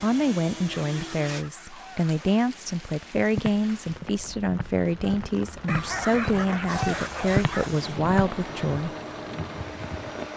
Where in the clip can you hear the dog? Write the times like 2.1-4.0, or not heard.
0.8-2.5, 5.7-7.7.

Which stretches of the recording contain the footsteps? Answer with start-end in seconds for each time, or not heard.
3.3-8.3.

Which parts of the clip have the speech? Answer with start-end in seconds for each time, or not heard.
0.0-8.9.